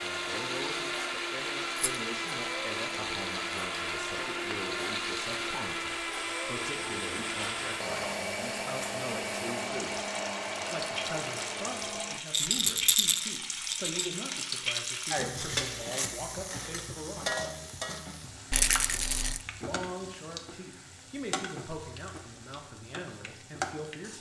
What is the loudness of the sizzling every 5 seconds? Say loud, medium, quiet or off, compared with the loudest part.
medium, medium, loud, loud, medium.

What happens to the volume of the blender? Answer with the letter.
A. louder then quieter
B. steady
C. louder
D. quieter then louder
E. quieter
B.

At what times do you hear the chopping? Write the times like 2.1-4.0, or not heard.
not heard.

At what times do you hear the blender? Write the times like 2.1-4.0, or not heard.
0.0-12.2.